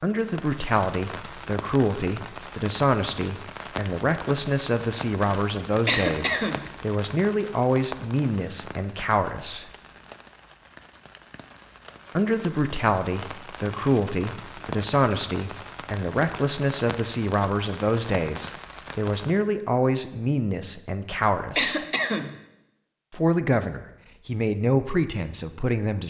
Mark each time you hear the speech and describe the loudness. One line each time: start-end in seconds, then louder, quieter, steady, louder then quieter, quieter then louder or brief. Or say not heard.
0.0-9.7 steady
12.2-21.9 steady
23.1-26.0 brief.